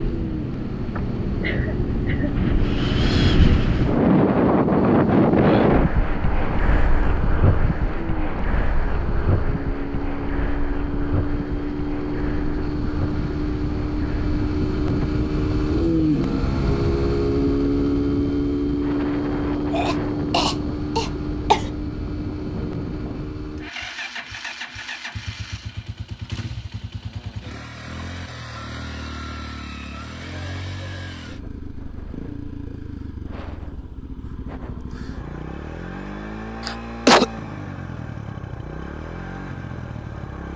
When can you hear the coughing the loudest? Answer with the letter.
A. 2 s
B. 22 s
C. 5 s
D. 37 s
D.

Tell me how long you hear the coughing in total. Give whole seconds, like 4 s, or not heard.
4 s.